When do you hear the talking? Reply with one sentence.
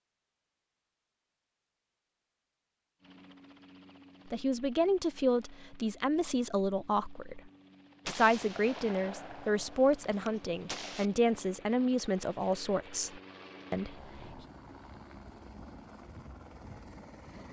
The talking can be heard from 4.3 to 7.4 s and from 8.1 to 13.9 s.